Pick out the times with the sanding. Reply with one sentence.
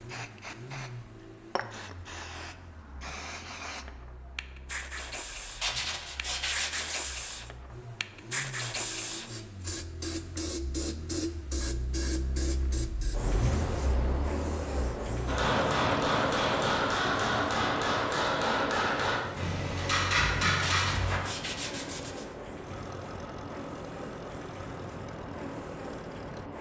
The sanding can be heard from 5.6 to 7.2 s and from 20.6 to 22.2 s.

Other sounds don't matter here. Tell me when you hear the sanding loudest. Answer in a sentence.
The volume of the sanding peaks at 6 seconds.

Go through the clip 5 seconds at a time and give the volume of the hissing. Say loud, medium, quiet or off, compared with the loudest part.
medium, loud, loud, loud, medium, medium.